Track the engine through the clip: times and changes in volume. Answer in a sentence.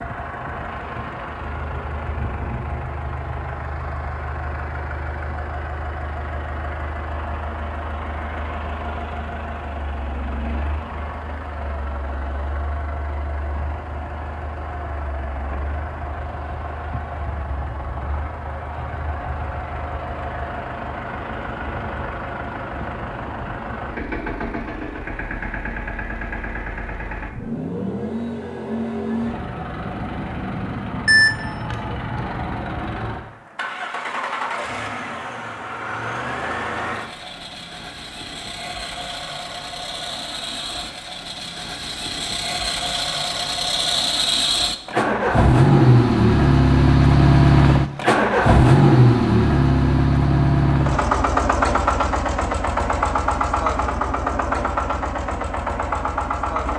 You can hear the engine from 0.0 to 56.7 s, getting louder.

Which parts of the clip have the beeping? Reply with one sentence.
You can hear the beeping from 31.1 to 32.2 s.